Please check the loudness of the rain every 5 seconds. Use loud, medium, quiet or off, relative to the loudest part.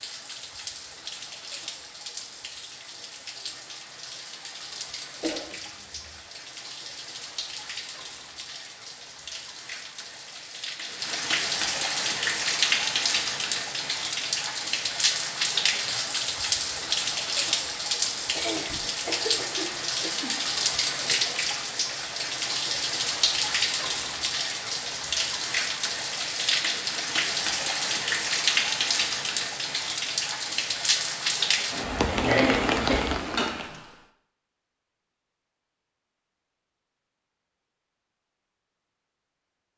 quiet, quiet, loud, loud, loud, loud, loud, off.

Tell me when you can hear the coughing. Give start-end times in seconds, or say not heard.
5.2-6.2, 18.4-20.4, 32.0-33.6.